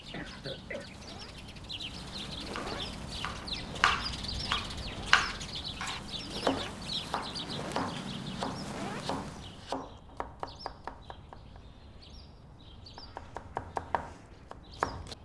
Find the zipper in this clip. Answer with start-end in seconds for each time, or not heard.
not heard.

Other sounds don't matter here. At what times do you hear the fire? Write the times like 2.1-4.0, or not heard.
0.0-9.7.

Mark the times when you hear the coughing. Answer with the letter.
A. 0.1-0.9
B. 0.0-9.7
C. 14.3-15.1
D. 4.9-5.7
A.